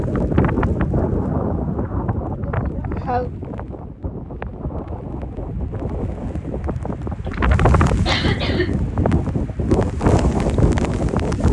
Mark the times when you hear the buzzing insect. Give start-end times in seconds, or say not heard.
not heard.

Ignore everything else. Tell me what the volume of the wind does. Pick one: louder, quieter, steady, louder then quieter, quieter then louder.
quieter then louder.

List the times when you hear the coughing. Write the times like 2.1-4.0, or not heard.
2.5-3.3, 7.3-8.8.